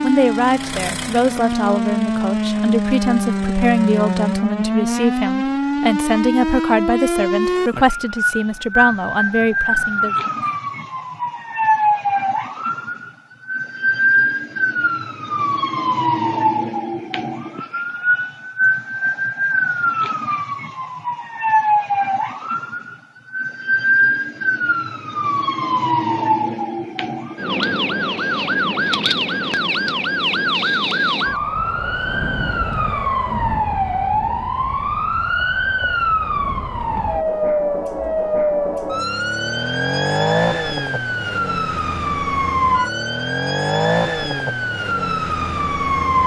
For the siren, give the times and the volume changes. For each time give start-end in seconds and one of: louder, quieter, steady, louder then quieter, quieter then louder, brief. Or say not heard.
0.0-46.2 steady.